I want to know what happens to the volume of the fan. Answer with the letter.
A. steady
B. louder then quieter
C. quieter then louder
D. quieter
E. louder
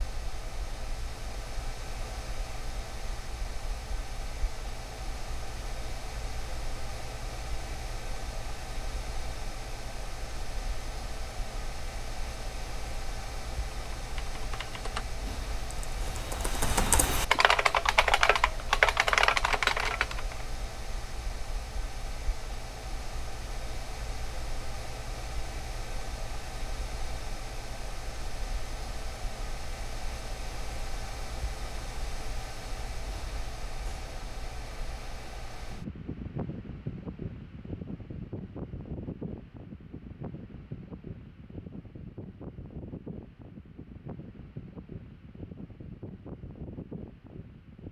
A.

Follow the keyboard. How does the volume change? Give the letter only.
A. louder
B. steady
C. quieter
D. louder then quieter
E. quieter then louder
A.